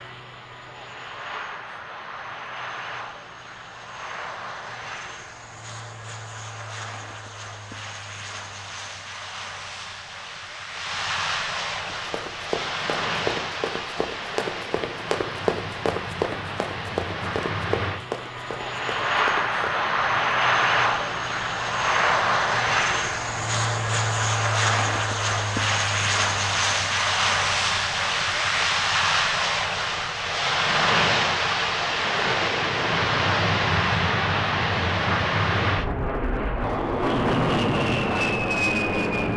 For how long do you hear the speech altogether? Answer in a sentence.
You can't hear the speech here.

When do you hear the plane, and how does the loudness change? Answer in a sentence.
The plane can be heard from 0.0 to 39.3 s, getting louder.